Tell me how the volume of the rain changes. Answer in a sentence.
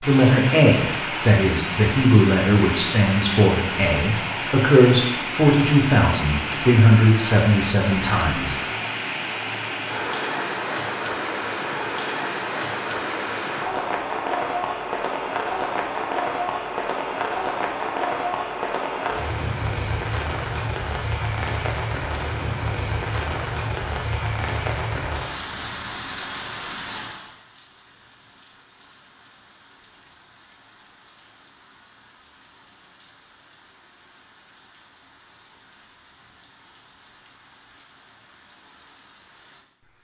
The volume of the rain goes down.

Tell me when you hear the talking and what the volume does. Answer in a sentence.
You can hear the talking from 0.0 to 8.6 s, at a steady volume.